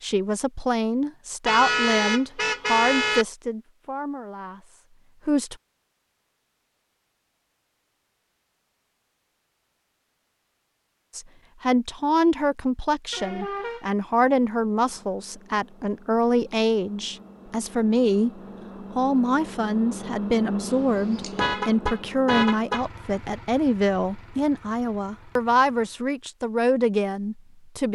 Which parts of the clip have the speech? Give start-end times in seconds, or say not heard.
0.0-5.5, 11.2-27.8.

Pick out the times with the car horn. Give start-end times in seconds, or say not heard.
1.4-3.2, 13.1-13.8, 20.9-22.9.